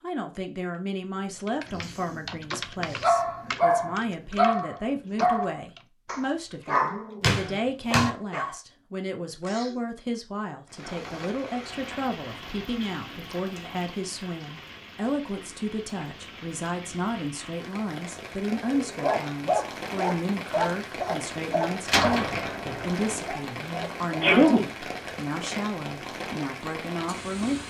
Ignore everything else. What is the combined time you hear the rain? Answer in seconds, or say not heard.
17 s.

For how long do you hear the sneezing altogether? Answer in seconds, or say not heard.
4 s.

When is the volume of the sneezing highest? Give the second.
24 s.